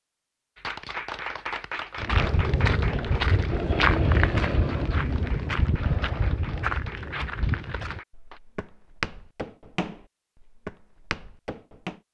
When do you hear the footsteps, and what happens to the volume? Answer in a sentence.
You can hear the footsteps from 1.9 to 12.0 s, getting quieter.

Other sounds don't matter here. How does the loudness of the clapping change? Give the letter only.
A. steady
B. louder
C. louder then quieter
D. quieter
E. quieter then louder
D.